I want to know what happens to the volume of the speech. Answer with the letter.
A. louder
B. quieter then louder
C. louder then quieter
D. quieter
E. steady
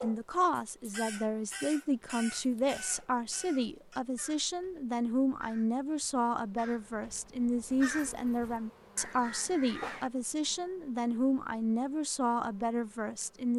E.